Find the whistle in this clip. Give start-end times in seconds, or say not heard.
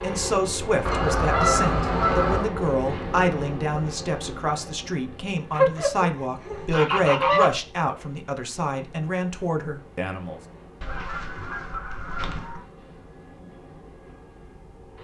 not heard.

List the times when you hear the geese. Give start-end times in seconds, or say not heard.
0.8-2.5, 5.5-7.5, 10.8-12.6.